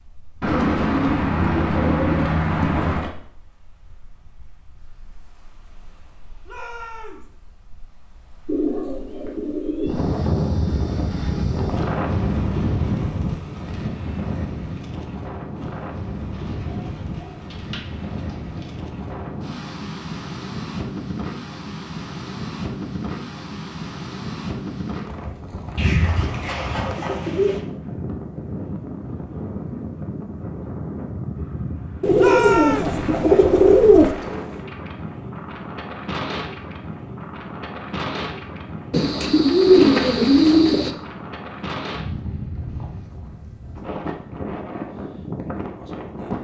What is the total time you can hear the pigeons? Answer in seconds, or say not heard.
13 s.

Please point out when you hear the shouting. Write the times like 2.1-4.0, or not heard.
6.5-7.2, 32.1-33.0.